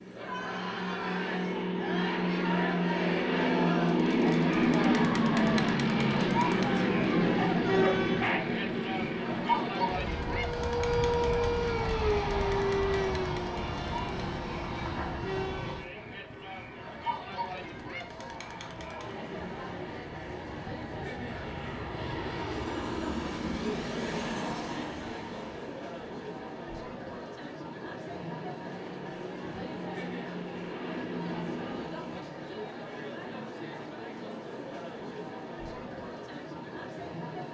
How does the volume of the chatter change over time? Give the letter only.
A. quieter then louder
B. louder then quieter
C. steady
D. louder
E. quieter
E.